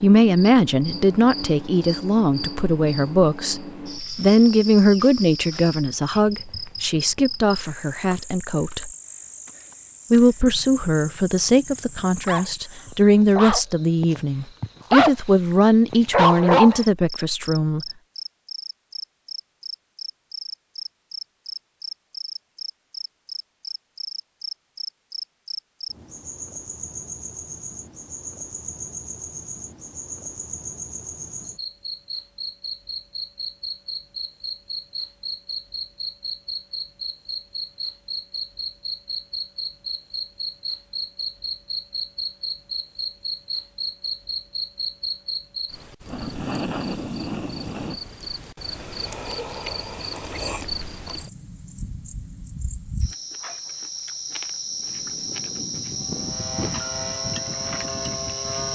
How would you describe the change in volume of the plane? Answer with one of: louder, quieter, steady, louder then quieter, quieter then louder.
louder.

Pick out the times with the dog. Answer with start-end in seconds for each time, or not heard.
12.0-15.1, 15.9-16.9.